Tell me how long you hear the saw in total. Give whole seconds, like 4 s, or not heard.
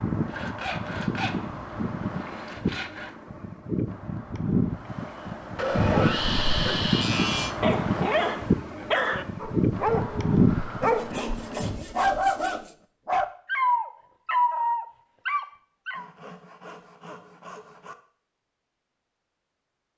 9 s.